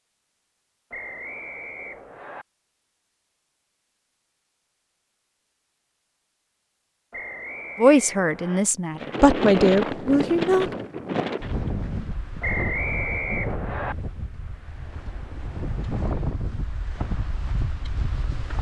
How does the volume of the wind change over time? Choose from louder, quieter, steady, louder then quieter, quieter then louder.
quieter.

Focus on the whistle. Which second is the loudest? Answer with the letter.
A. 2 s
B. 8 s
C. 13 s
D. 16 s
C.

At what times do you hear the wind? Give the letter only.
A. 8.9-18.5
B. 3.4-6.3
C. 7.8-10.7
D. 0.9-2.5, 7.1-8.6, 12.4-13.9
A.